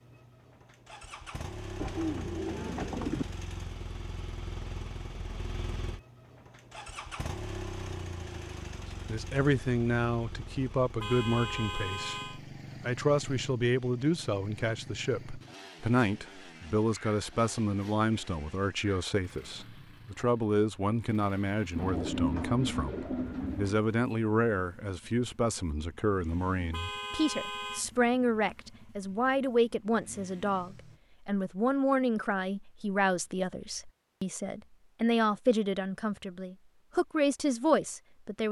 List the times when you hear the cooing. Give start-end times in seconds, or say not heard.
1.8-3.2, 21.8-23.8.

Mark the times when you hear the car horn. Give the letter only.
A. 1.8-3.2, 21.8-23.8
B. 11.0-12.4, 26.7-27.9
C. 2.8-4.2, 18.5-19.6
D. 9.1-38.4
B.